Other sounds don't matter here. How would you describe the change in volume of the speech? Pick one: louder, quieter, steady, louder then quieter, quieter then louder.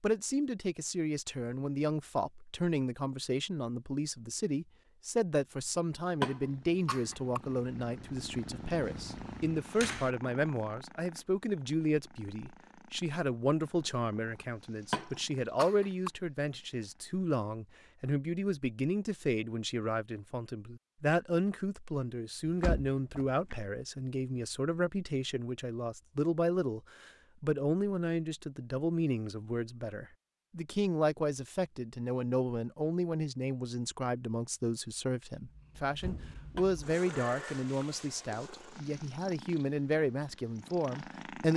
steady.